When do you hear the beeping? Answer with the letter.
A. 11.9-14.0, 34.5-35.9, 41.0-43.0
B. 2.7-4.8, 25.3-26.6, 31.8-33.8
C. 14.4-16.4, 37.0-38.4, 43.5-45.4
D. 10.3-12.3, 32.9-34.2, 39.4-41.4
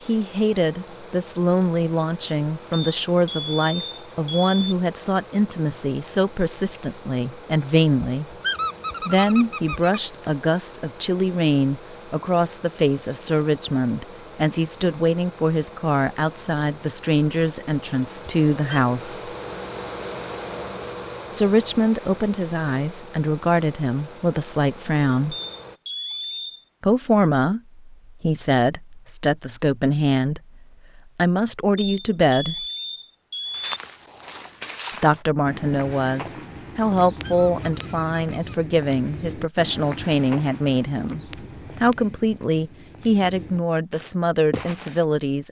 B.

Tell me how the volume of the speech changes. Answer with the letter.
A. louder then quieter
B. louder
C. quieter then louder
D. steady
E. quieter
D.